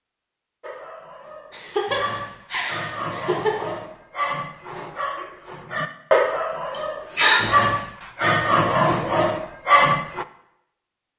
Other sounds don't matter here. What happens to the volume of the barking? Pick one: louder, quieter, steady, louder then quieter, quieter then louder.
louder.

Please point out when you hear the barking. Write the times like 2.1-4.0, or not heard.
0.6-10.2.